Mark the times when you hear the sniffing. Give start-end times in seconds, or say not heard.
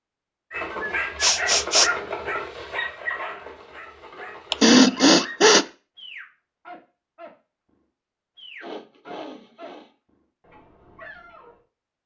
1.2-1.9, 4.5-5.7, 8.6-9.9.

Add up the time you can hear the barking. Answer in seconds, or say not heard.
11 s.